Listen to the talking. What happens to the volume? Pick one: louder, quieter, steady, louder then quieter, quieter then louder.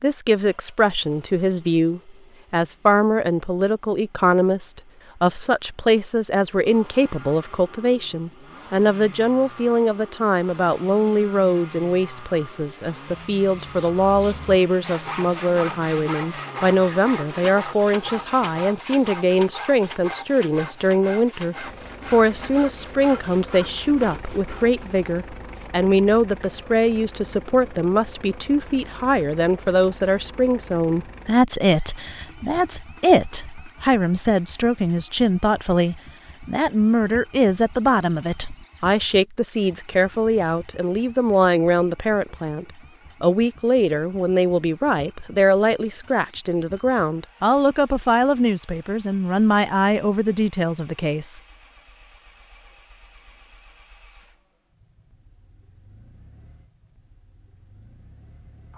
steady.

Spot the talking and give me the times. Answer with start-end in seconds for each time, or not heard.
0.0-51.4.